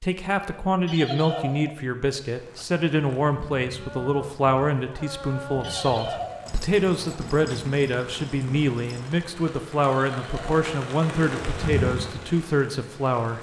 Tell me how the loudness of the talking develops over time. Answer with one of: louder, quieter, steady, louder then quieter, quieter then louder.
steady.